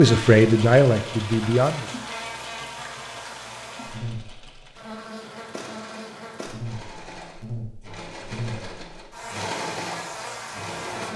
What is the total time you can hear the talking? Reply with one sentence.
You can hear the talking for 2 seconds altogether.